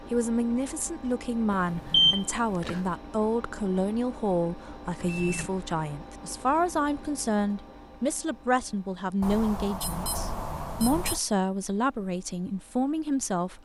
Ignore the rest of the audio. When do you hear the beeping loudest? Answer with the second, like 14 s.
2 s.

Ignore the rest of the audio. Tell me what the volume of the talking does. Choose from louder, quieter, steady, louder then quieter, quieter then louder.
steady.